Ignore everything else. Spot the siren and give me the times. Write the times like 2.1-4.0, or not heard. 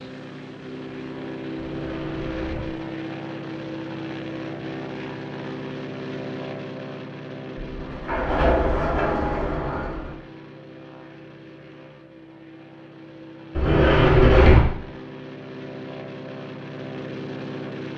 not heard.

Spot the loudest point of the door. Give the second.
14 s.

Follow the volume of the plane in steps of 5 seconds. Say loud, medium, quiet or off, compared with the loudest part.
loud, loud, medium, loud.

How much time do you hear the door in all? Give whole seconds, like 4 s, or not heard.
5 s.